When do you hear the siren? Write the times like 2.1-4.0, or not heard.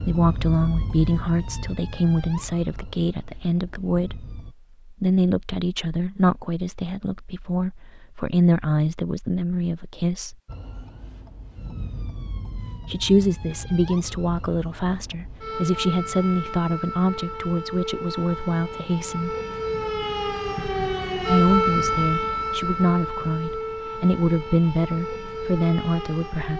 0.0-4.5, 10.4-26.5.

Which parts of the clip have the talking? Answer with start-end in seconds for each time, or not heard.
0.0-10.3, 12.8-19.4, 21.2-26.5.